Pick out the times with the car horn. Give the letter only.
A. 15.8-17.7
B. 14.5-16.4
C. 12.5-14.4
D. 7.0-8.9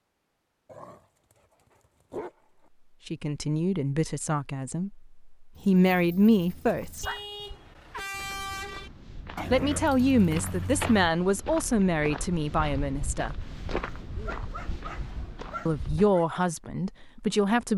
D.